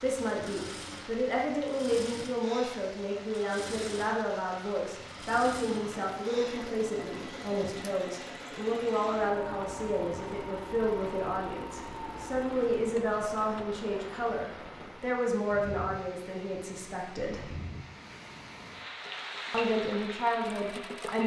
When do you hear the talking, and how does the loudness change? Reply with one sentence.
You can hear the talking from 0.0 to 17.5 s, at a steady volume; and briefly from 19.5 to 21.2 s.